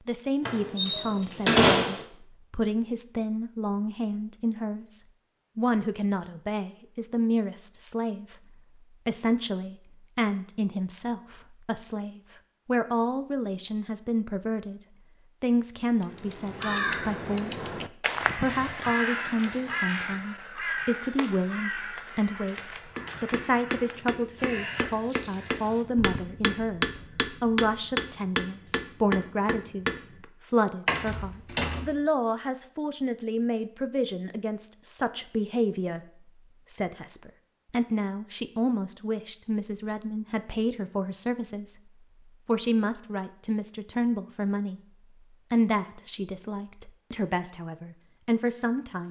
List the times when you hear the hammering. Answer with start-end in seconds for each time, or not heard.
22.9-30.2.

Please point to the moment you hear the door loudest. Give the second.
2 s.